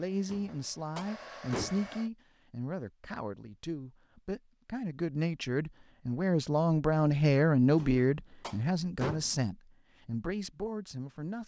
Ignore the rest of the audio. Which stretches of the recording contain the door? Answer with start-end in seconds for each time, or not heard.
0.2-1.9, 7.8-9.4.